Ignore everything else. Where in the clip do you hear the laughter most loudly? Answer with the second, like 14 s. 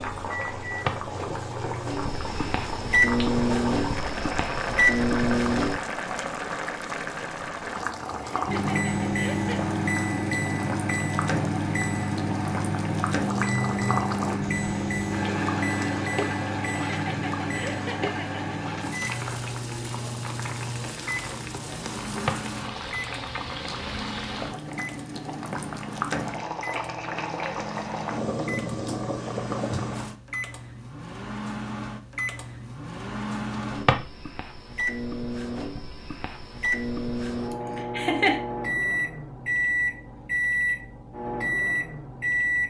38 s.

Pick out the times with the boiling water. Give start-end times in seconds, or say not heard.
0.0-30.1.